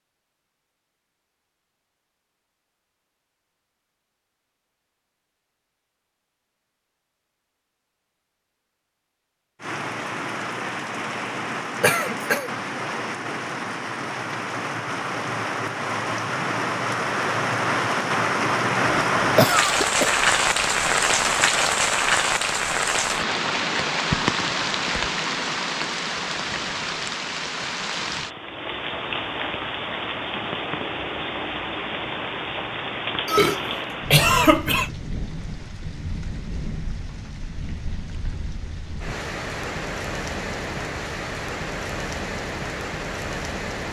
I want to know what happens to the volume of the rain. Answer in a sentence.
The volume of the rain goes up, then down.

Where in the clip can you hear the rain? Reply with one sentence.
The rain can be heard from 9.6 to 43.8 s.